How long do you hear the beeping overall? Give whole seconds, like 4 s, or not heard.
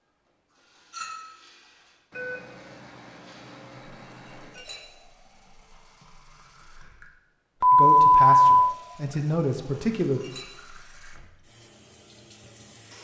4 s.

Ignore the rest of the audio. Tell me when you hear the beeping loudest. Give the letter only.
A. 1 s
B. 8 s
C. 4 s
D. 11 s
B.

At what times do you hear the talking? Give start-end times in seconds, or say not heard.
7.7-10.2.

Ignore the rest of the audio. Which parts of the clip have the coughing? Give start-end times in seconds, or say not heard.
not heard.